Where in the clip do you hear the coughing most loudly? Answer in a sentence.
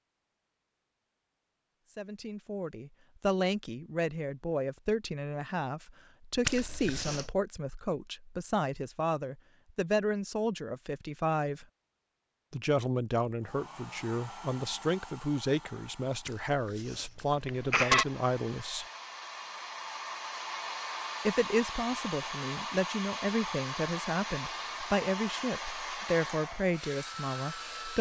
The volume of the coughing peaks at 18 seconds.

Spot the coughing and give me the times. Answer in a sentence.
You can hear the coughing from 6.4 to 7.3 s and from 16.2 to 18.1 s.